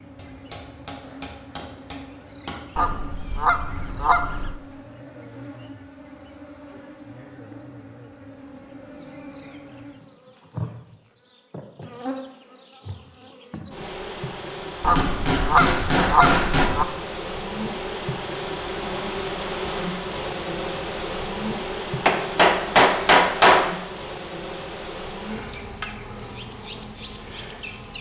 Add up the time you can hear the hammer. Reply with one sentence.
The hammer can be heard for 6 seconds in total.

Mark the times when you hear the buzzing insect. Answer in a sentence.
The buzzing insect can be heard from 0.0 to 27.9 s.